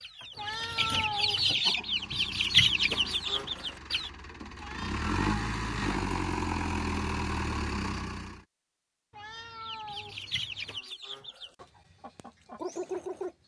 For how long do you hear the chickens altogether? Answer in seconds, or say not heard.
8 s.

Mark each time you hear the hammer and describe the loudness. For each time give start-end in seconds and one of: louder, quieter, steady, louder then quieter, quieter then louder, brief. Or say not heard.
not heard.